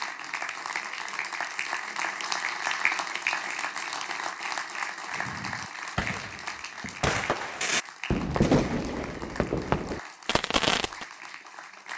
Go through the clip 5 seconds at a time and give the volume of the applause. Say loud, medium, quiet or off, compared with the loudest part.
loud, medium, medium.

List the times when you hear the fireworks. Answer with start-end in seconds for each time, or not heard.
5.1-11.1.